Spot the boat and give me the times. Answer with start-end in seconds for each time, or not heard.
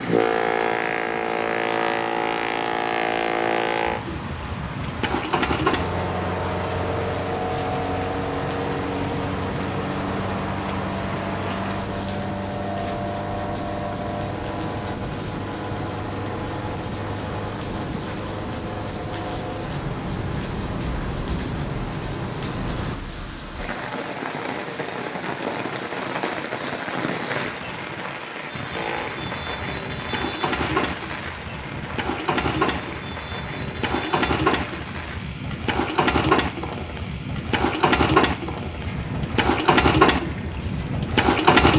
0.0-23.0, 28.7-41.7.